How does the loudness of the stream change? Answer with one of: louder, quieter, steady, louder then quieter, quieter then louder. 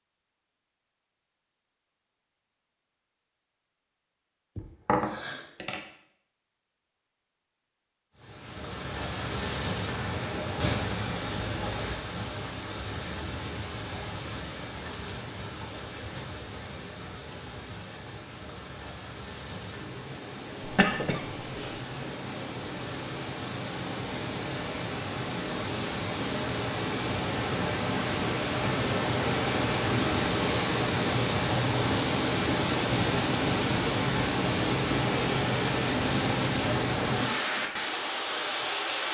quieter then louder.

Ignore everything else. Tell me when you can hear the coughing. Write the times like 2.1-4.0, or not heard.
4.5-5.8, 20.6-21.8.